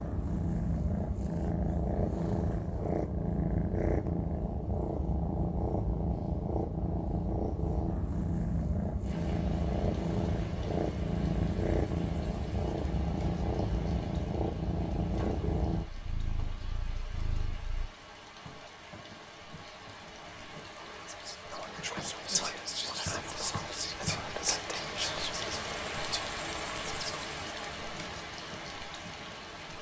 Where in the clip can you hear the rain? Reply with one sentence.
The rain can be heard from 9.0 to 29.7 s.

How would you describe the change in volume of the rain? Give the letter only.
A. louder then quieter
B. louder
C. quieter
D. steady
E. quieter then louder
B.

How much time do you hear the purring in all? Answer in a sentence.
You can hear the purring for 18 seconds altogether.